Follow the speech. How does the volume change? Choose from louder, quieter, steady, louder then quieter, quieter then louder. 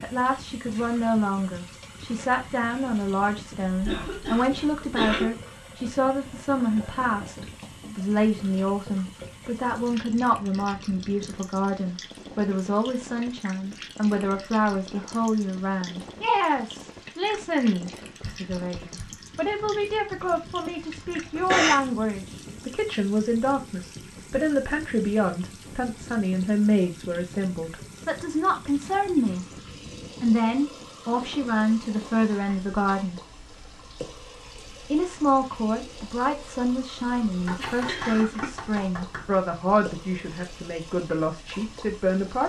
steady.